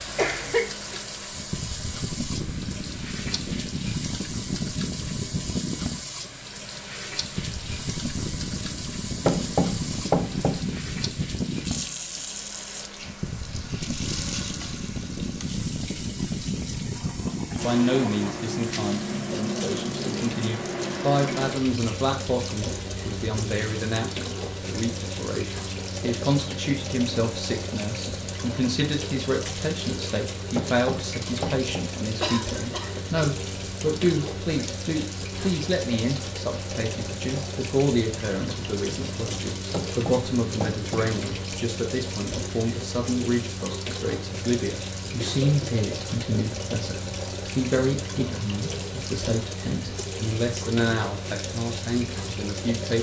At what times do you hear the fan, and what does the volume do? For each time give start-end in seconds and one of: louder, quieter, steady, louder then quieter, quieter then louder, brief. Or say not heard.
0.0-52.9 quieter.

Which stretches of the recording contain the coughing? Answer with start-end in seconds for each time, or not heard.
0.1-1.0, 32.2-33.2, 45.2-45.8.